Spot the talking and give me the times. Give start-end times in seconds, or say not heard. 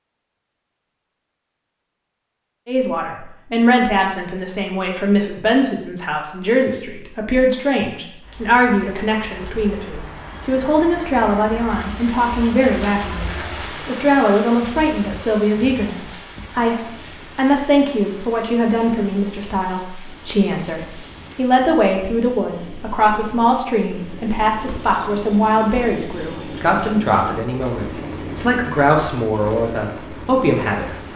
2.6-30.9.